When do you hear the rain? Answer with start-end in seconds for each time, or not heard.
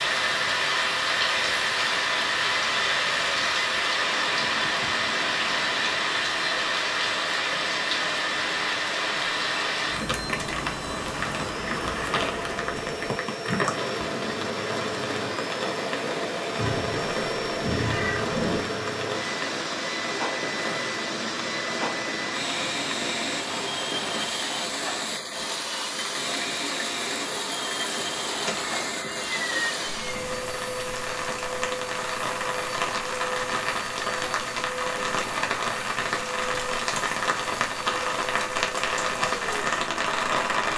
0.0-40.7.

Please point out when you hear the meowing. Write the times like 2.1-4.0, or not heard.
4.3-6.0, 16.6-18.6, 27.9-30.1.